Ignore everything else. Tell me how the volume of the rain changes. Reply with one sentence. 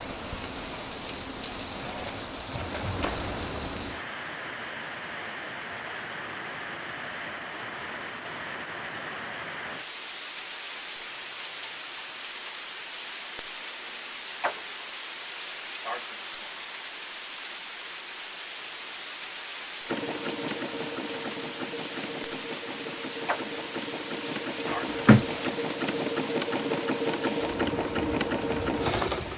The loudness of the rain stays about the same.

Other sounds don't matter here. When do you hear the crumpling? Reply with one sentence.
The crumpling can be heard from 24.6 to 25.5 s.